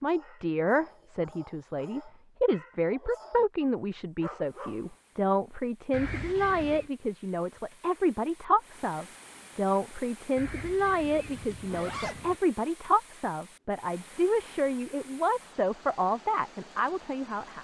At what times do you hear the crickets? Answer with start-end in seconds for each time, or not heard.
not heard.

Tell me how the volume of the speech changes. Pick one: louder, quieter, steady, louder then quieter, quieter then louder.
steady.